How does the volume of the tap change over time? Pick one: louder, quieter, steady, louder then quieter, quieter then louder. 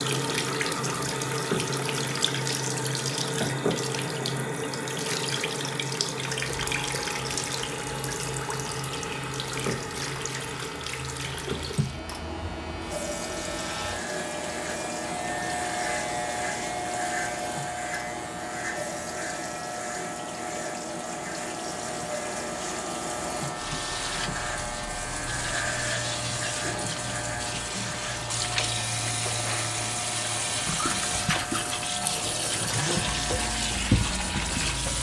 quieter then louder.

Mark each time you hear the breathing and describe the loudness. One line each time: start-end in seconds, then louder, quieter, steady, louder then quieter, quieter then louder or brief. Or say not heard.
not heard.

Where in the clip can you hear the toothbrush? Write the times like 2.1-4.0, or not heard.
30.8-34.9.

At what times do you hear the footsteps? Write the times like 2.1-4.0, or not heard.
not heard.